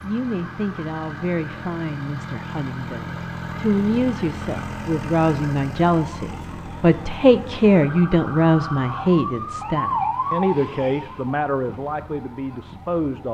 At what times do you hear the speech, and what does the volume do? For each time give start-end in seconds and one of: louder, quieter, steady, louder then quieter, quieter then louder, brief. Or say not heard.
0.0-13.2 louder then quieter.